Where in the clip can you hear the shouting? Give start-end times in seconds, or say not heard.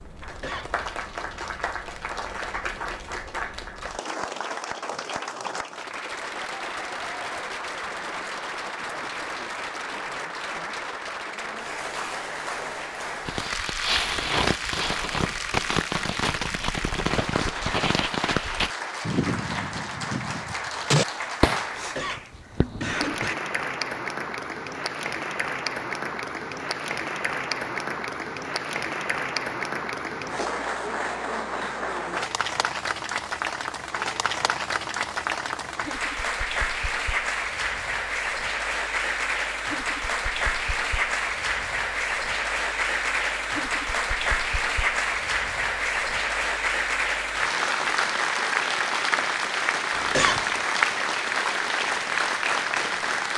not heard.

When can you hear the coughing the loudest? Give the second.
50 s.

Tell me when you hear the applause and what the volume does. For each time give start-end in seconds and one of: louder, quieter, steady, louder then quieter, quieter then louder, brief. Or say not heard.
0.0-53.3 louder.